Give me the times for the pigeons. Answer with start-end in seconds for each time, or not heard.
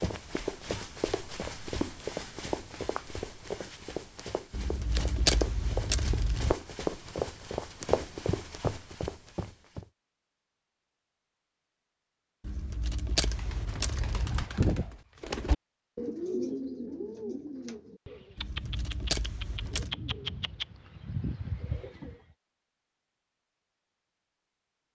13.2-22.1.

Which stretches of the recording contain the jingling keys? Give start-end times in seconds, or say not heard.
4.5-6.5, 12.4-14.4, 18.4-19.9.